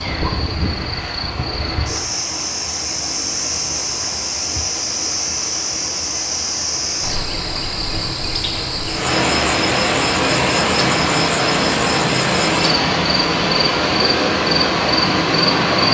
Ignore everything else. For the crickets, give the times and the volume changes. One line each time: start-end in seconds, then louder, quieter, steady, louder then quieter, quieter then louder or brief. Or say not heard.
0.0-15.8 steady.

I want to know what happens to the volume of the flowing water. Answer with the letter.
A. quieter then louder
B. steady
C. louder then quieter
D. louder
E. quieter
D.